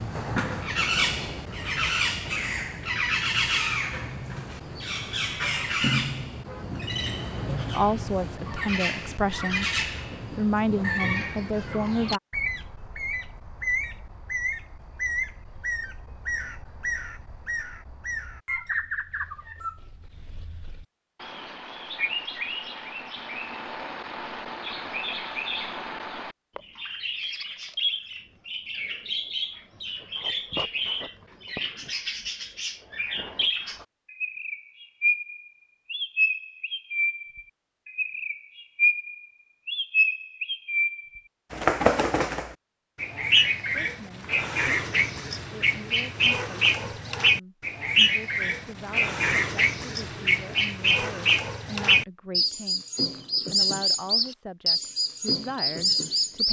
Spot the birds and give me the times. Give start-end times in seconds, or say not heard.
0.0-56.4.